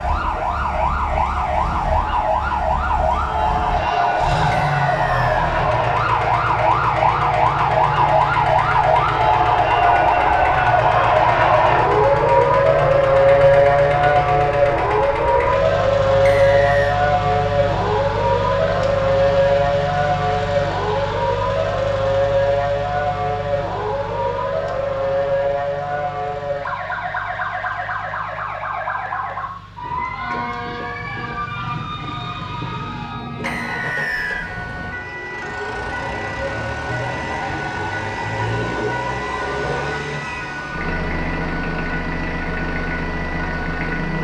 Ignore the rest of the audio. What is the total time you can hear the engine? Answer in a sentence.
The engine can be heard for 44 seconds in total.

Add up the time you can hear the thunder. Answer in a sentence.
You can hear the thunder for 3 seconds altogether.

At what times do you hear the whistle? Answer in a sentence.
The whistle can be heard from 4.7 to 5.3 s, from 16.2 to 17.0 s and from 33.5 to 34.5 s.